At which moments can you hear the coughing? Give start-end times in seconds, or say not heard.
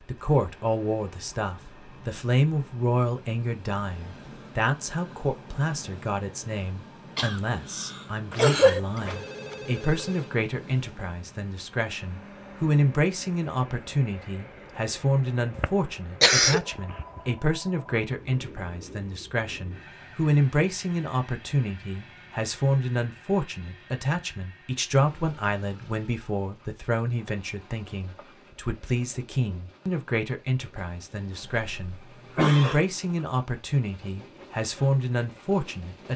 7.2-8.8, 15.6-17.1, 31.6-32.9.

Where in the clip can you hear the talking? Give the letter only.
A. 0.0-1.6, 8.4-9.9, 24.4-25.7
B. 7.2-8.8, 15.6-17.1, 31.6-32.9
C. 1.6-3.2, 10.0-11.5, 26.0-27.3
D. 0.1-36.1
D.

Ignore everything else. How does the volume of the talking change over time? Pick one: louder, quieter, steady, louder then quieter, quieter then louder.
steady.